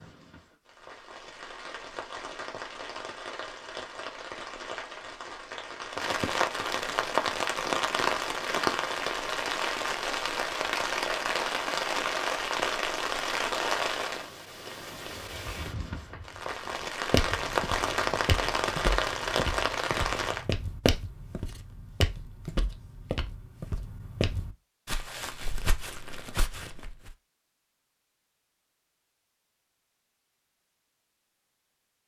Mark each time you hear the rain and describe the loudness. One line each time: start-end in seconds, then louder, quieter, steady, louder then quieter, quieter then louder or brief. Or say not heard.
0.0-20.4 louder.